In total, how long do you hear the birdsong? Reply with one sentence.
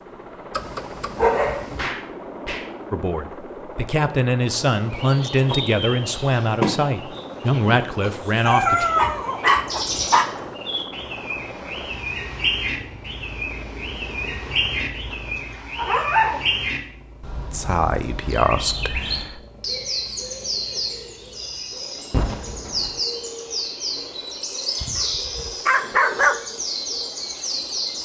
The birdsong can be heard for 23 seconds in total.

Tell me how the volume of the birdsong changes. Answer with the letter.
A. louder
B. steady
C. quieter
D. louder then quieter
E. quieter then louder
B.